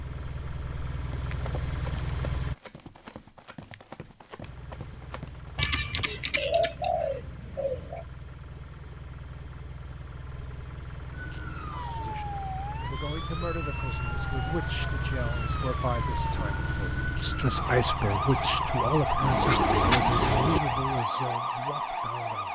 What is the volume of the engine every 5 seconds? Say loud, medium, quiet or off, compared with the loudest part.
loud, medium, loud, loud, off.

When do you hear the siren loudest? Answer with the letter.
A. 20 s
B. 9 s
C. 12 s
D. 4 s
A.